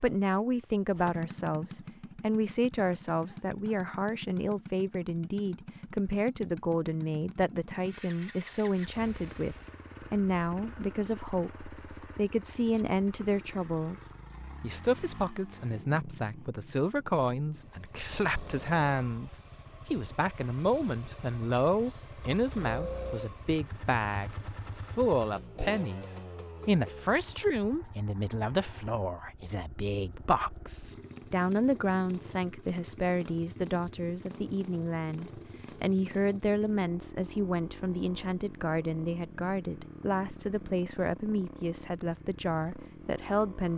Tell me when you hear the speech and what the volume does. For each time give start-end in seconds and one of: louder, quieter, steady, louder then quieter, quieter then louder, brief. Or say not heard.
0.0-24.3 steady
24.9-43.7 steady.